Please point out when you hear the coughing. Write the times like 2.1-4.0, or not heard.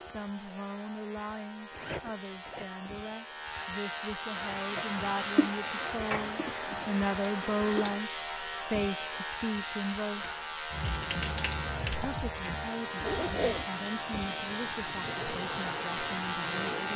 not heard.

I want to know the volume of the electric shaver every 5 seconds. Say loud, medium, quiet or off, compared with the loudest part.
medium, loud, loud, loud.